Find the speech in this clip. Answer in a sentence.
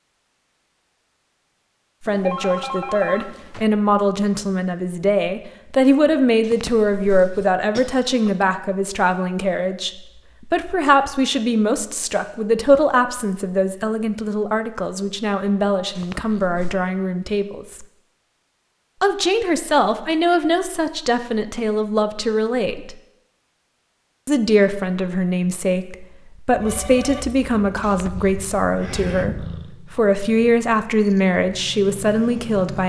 You can hear the speech from 2.0 to 17.9 s, from 19.0 to 22.9 s and from 24.2 to 32.8 s.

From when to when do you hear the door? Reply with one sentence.
The door can't be heard in this clip.